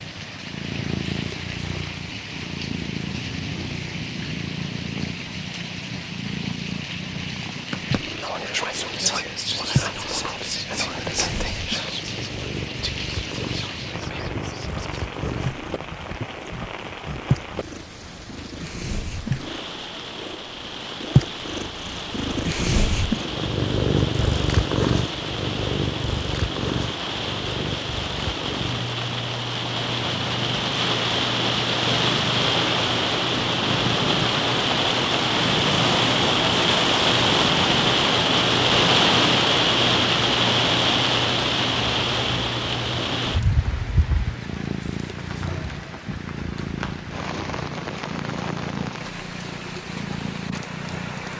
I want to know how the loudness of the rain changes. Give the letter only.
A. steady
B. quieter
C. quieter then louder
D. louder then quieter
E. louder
D.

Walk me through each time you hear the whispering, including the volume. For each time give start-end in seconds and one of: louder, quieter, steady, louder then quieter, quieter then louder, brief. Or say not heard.
8.2-15.1 quieter.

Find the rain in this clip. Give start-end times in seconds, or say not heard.
0.0-51.3.